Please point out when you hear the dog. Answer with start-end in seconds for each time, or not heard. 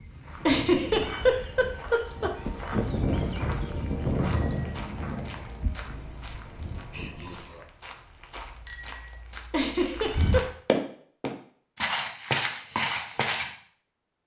not heard.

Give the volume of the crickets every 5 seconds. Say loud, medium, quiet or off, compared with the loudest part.
loud, medium, off.